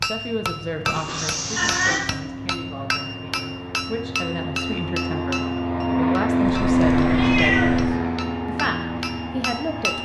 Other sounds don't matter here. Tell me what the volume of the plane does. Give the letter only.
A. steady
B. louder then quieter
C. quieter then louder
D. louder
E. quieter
B.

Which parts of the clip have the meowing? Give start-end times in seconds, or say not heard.
0.8-2.0, 6.5-8.0.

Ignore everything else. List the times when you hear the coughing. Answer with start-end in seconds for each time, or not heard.
not heard.